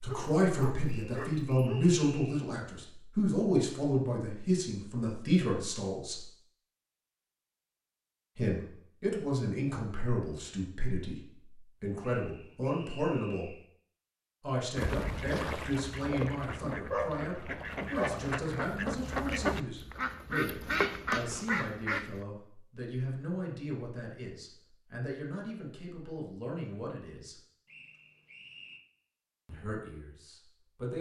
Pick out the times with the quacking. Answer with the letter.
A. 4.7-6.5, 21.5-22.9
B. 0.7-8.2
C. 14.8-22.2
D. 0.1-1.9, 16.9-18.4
C.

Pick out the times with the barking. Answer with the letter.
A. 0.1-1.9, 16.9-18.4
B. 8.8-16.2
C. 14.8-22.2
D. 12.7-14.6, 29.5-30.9
A.